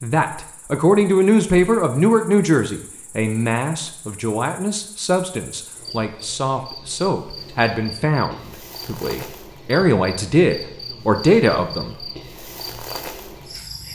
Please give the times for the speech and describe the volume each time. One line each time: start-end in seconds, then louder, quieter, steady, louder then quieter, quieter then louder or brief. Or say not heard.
0.0-12.1 quieter then louder.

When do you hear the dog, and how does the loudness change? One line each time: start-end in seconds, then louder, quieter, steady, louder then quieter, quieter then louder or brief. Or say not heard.
not heard.